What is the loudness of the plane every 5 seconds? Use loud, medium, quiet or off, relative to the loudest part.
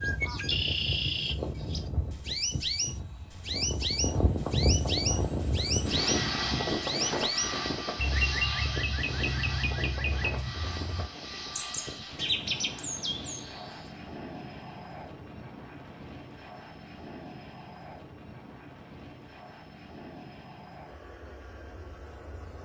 loud, loud, medium, quiet, quiet.